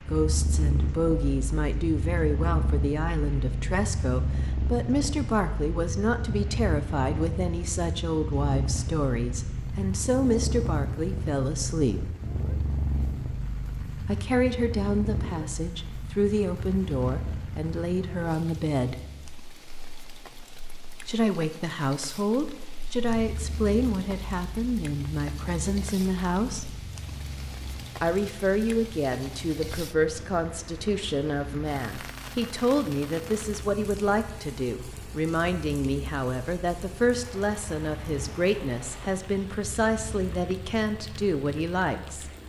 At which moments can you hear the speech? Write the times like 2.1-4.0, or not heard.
0.1-12.2, 14.0-19.1, 21.1-26.7, 28.0-42.3.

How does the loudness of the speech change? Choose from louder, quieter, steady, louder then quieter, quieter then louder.
steady.